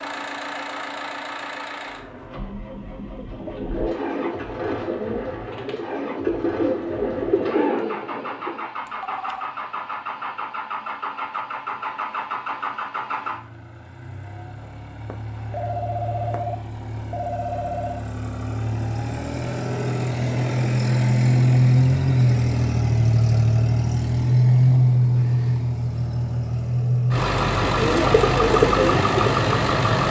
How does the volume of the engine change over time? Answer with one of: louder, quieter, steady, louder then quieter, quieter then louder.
louder.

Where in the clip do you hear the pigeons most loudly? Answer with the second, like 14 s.
29 s.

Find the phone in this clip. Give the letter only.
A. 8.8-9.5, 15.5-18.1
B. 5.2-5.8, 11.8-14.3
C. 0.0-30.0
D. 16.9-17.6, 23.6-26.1
A.